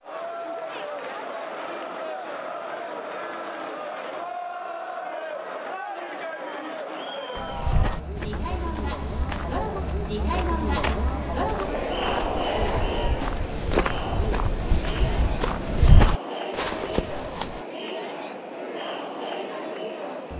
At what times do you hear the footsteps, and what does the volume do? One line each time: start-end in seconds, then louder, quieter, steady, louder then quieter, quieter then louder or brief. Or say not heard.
7.3-17.6 louder.